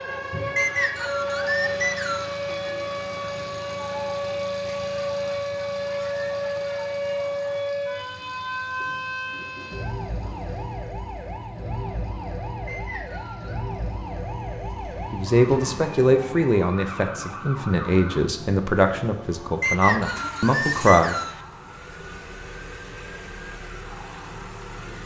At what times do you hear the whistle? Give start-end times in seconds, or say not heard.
0.6-2.4, 12.7-13.6, 19.6-21.4.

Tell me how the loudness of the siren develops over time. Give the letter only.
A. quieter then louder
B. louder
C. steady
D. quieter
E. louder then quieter
D.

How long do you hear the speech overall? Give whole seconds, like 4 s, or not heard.
6 s.